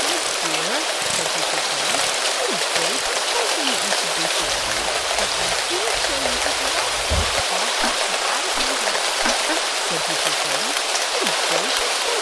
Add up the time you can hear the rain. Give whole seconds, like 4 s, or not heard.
12 s.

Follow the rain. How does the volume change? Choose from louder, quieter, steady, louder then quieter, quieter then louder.
steady.